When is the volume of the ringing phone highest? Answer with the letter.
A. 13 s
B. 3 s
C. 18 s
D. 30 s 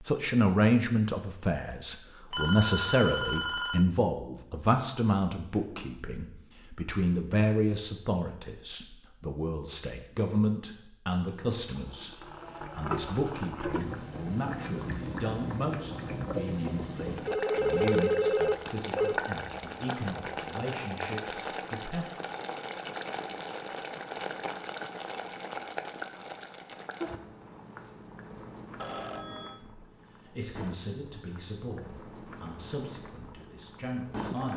C.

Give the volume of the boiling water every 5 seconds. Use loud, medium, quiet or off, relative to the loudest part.
off, off, loud, loud, loud, medium, medium.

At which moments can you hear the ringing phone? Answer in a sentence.
You can hear the ringing phone from 2.3 to 3.9 s, from 17.2 to 19.2 s and from 28.8 to 29.6 s.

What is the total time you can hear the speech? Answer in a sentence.
You can hear the speech for 27 seconds altogether.